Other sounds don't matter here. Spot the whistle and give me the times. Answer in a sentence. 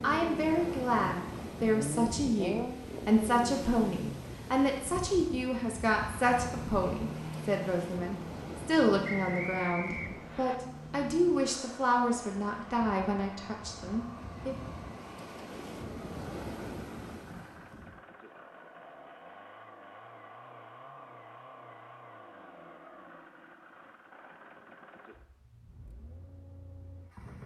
The whistle can be heard from 9.0 to 10.6 s.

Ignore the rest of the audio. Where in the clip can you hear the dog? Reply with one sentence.
You can't hear the dog here.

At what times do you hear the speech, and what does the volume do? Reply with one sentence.
You can hear the speech from 0.0 to 14.6 s, at a steady volume.